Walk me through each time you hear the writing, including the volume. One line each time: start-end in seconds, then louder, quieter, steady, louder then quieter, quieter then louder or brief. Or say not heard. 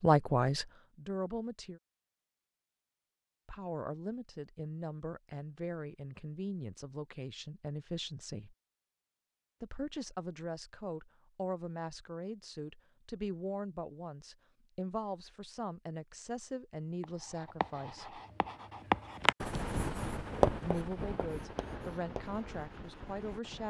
17.0-23.6 louder then quieter.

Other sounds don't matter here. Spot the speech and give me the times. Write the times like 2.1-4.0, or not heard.
0.0-1.8, 3.5-8.6, 9.6-18.2, 20.6-23.6.